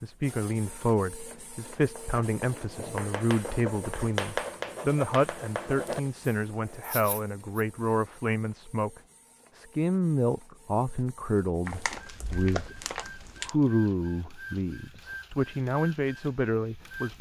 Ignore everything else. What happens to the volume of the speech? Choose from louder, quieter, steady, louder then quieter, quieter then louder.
steady.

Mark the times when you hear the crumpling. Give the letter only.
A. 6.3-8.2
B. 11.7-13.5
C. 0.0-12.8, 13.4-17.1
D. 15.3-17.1
B.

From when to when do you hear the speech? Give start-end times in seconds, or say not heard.
0.0-12.8, 13.4-17.1.